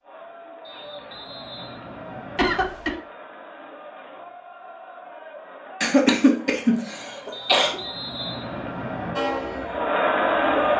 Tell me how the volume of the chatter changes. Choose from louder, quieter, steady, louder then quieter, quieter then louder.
louder.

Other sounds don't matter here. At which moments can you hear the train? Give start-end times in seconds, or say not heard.
9.2-10.7.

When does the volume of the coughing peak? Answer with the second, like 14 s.
6 s.